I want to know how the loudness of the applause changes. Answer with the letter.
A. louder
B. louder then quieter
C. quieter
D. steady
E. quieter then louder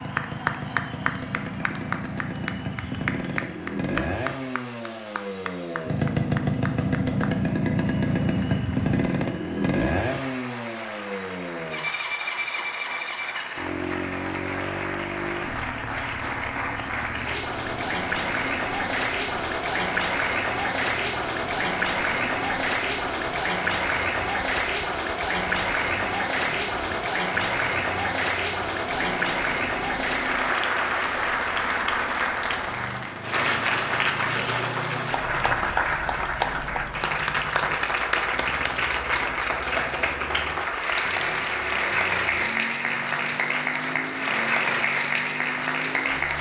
A.